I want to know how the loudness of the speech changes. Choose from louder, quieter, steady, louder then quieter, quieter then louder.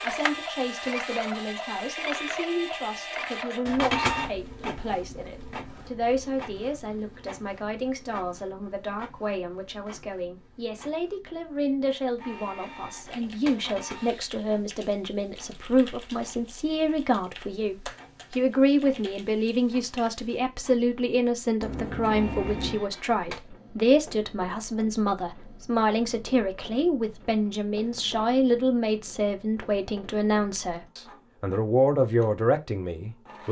louder.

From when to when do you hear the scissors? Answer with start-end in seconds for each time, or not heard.
21.6-22.9.